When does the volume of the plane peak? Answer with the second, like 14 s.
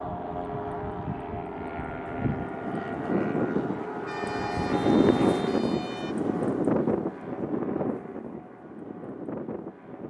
5 s.